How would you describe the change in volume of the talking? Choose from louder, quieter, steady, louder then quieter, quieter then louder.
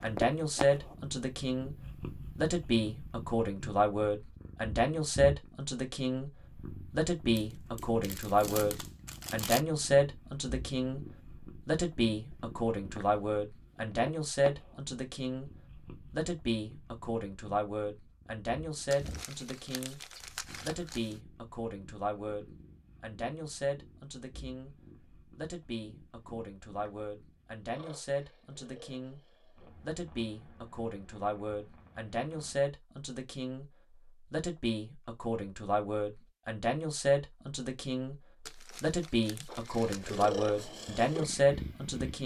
quieter then louder.